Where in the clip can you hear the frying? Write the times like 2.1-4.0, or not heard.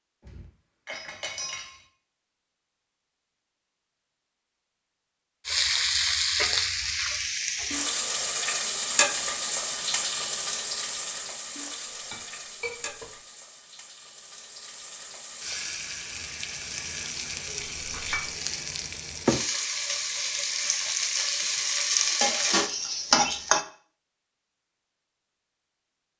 5.5-23.6.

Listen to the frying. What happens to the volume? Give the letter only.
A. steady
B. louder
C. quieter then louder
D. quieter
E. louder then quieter
C.